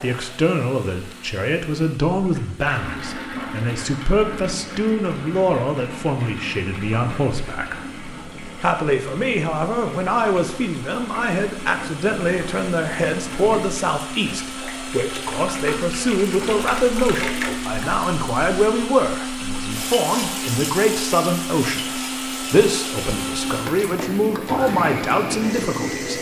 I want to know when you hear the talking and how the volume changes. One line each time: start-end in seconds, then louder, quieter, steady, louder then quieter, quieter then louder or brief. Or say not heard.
0.0-7.8 steady
8.6-26.1 steady.